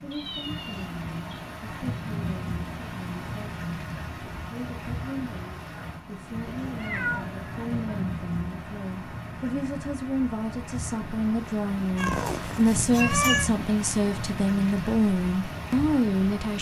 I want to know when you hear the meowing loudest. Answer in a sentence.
The volume of the meowing peaks at 13 seconds.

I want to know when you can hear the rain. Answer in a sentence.
You can hear the rain from 0.0 to 16.5 s.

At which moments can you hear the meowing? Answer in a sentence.
You can hear the meowing from 0.1 to 1.4 s, from 6.5 to 8.1 s and from 11.9 to 13.5 s.